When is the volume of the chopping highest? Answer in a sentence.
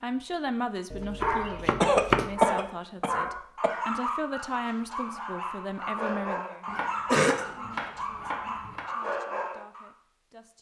The loudest moment of the chopping is at 2 seconds.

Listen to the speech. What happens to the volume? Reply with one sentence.
The volume of the speech goes down.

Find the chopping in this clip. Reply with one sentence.
The chopping can be heard from 0.9 to 2.4 s and from 6.7 to 8.9 s.